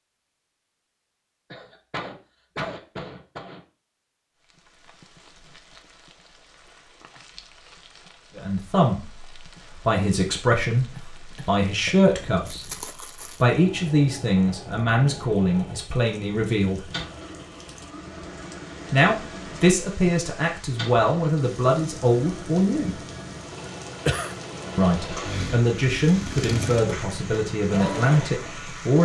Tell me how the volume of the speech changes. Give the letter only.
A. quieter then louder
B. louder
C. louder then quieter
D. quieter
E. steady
E.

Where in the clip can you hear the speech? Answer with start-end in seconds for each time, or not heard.
8.3-12.7, 13.4-16.9, 18.9-23.0, 24.8-29.0.